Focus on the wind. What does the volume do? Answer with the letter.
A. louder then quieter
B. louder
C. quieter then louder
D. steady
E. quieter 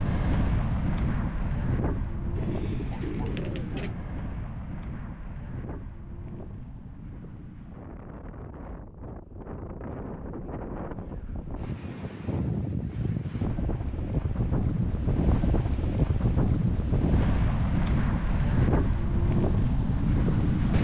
C.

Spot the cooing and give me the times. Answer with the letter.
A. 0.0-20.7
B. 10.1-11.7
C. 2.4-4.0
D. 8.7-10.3
C.